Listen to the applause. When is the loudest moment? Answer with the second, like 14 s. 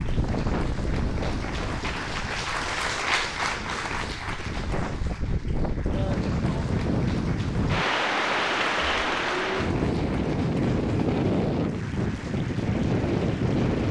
3 s.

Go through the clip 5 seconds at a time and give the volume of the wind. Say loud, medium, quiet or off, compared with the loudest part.
medium, loud, loud.